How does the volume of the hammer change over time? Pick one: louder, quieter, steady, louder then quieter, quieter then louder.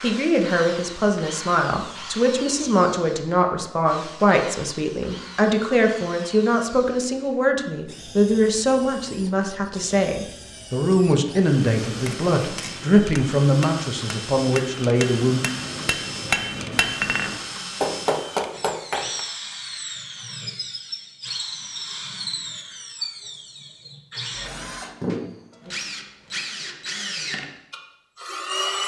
louder.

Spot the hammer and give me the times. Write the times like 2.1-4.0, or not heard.
11.7-19.2.